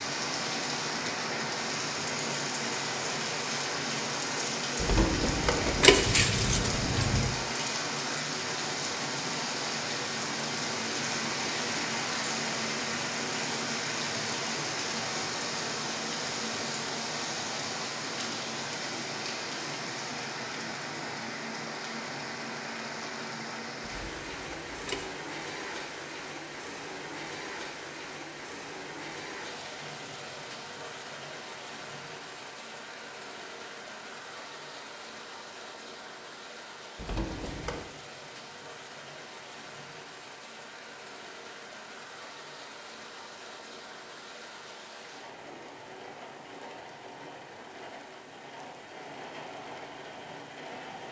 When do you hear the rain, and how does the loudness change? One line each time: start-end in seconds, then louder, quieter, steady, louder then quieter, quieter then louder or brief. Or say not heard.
0.0-51.0 quieter.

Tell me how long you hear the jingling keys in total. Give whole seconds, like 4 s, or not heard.
5 s.